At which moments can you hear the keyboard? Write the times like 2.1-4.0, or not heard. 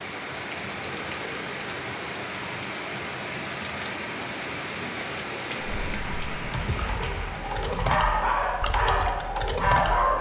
5.7-10.1.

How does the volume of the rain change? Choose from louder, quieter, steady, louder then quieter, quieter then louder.
quieter.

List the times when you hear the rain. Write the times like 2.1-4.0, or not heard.
0.0-10.1.